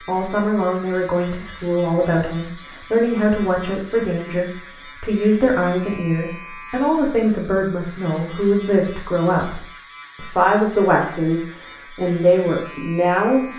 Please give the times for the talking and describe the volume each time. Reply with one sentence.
You can hear the talking from 0.1 to 13.5 s, at a steady volume.